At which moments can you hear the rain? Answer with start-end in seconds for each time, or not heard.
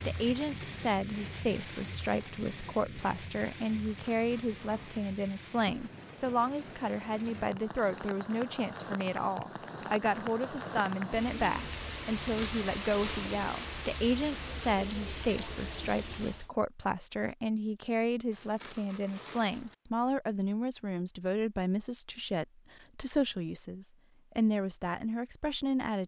0.0-16.5.